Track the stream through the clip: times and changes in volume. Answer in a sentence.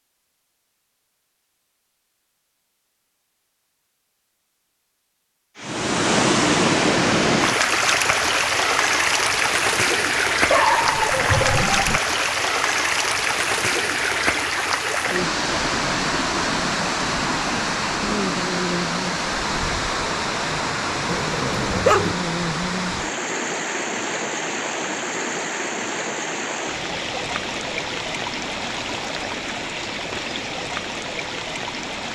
You can hear the stream from 5.5 to 32.0 s, getting quieter.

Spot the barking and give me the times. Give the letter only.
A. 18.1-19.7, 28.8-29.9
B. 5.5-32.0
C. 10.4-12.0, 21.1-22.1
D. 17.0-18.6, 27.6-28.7
C.